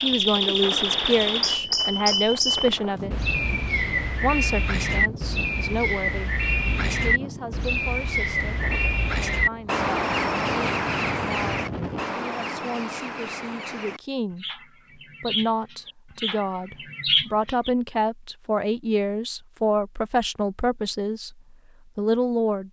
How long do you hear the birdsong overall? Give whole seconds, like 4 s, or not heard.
18 s.